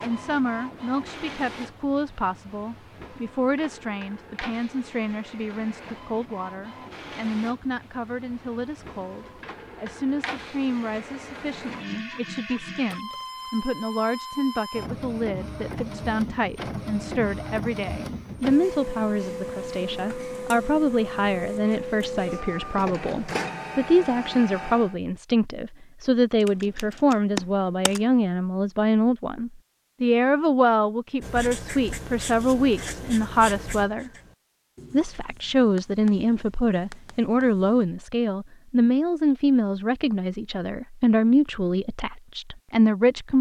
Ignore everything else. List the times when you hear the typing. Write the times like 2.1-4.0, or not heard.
26.4-28.0.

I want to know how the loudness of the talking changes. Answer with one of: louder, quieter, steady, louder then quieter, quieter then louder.
louder.